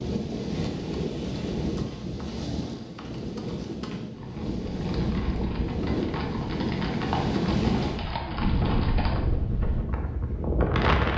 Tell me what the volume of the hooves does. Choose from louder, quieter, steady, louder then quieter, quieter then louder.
louder.